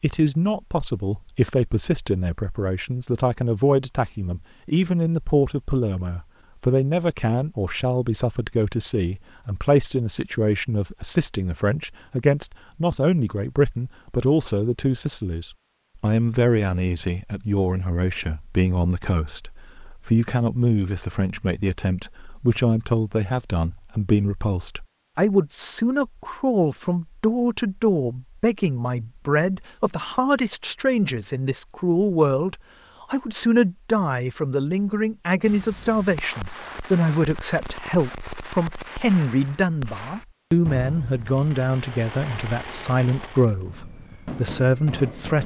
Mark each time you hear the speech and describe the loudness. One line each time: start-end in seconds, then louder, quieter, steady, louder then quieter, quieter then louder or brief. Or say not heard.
0.0-45.4 steady.